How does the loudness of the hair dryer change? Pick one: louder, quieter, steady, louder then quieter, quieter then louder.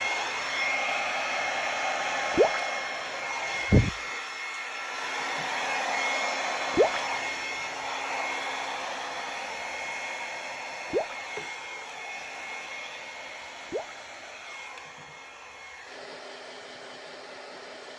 quieter.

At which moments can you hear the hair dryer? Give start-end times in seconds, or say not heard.
0.0-17.9.